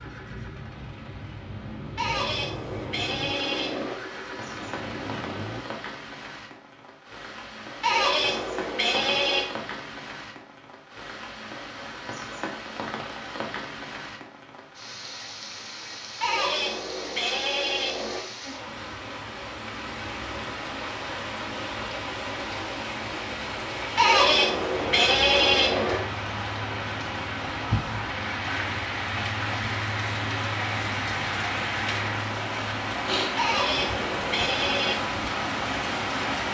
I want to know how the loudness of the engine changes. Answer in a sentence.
The volume of the engine goes up.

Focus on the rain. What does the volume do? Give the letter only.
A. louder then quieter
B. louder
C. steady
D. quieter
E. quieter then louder
B.